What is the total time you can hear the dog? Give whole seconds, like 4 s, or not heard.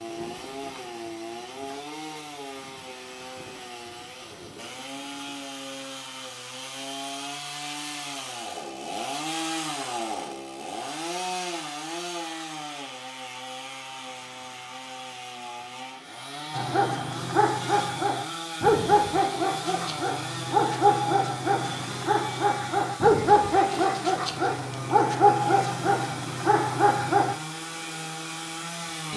11 s.